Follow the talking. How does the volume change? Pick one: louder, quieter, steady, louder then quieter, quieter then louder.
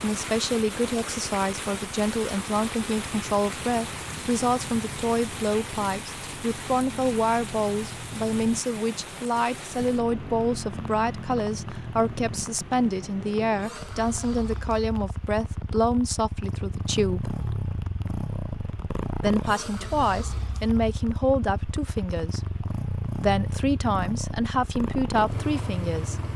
steady.